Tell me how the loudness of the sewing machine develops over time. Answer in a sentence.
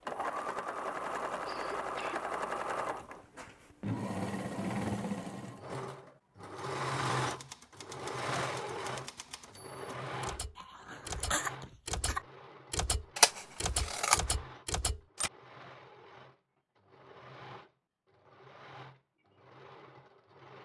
The volume of the sewing machine goes down.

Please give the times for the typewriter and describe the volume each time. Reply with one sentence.
The typewriter can be heard from 7.2 to 15.3 s, getting louder.